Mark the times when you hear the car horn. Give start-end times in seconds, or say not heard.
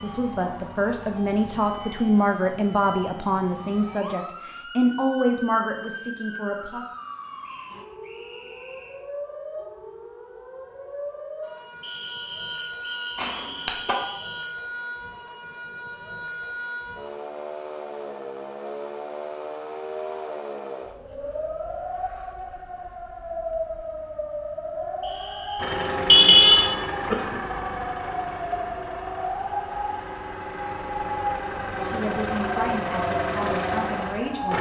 13.2-13.9, 26.1-26.7.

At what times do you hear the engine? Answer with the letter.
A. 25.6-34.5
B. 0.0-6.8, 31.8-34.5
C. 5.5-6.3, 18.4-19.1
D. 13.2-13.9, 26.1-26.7
A.